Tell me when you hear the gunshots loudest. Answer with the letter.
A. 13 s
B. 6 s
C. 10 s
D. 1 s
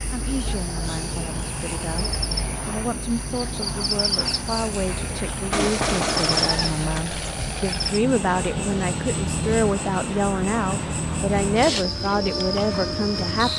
B.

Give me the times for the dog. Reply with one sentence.
You can't hear the dog here.